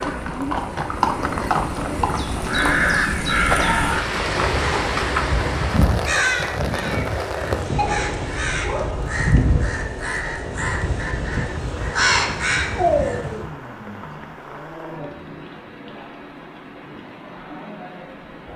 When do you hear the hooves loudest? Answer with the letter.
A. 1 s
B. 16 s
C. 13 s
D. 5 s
A.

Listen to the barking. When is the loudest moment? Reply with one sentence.
The volume of the barking peaks at 13 seconds.